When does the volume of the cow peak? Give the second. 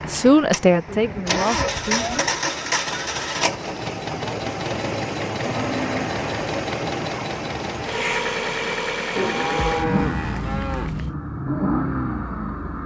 10 s.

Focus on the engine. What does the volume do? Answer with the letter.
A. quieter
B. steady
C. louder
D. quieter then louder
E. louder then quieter
B.